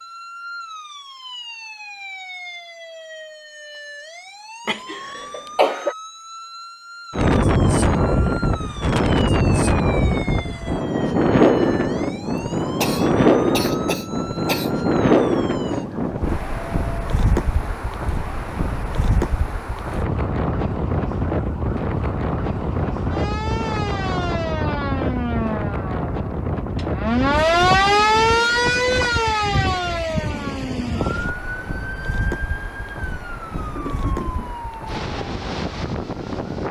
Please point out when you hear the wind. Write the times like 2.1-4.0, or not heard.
7.1-36.6.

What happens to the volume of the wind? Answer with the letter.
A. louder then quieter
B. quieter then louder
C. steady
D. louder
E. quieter
E.